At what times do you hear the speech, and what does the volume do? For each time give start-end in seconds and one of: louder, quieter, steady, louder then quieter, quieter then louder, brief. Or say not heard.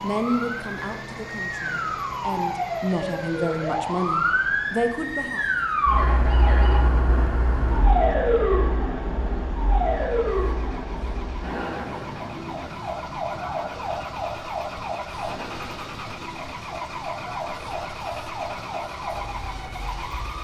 0.0-5.5 quieter then louder.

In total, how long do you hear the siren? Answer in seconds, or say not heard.
20 s.